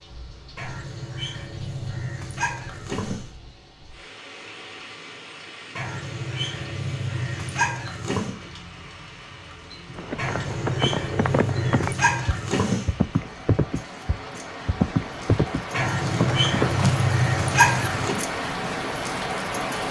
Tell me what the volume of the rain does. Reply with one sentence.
The volume of the rain goes up.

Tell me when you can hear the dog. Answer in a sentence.
The dog can be heard from 0.6 to 3.3 s, from 5.8 to 8.3 s, from 10.2 to 12.9 s and from 15.7 to 18.2 s.